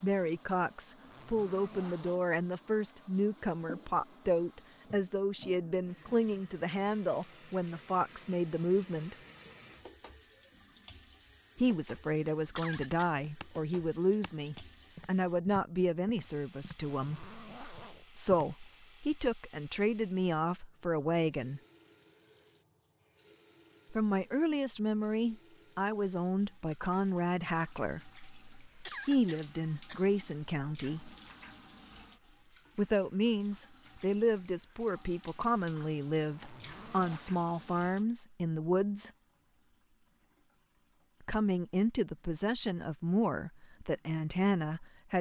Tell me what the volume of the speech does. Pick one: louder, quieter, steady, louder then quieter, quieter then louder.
steady.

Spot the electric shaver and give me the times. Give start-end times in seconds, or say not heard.
not heard.